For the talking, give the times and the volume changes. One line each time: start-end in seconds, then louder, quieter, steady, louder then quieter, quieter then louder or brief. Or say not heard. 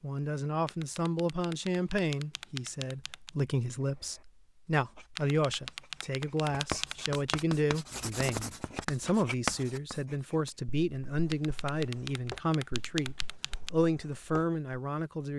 0.0-15.3 steady.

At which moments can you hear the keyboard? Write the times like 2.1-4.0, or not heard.
0.7-3.4, 5.2-7.3, 11.3-13.7.